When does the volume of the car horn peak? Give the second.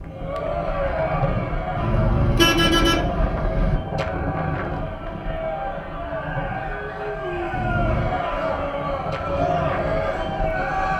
3 s.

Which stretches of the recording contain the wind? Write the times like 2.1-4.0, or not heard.
0.0-10.9.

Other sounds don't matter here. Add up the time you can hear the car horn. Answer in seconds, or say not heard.
3 s.